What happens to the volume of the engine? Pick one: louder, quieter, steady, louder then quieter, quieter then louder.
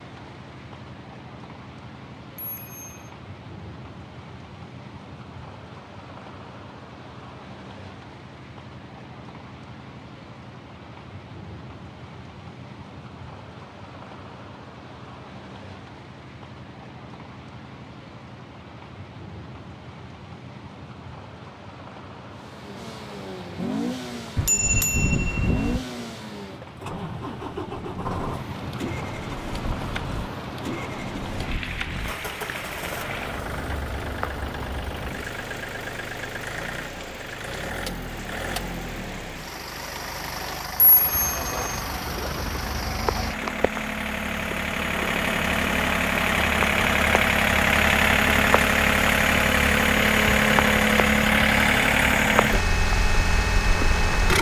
louder.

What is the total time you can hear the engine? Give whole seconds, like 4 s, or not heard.
32 s.